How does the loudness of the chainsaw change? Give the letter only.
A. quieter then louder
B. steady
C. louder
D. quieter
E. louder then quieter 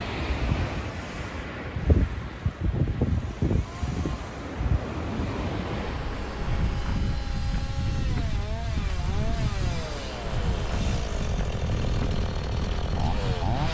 C.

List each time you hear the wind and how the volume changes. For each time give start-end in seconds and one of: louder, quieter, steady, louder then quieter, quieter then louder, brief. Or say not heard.
0.0-13.6 steady.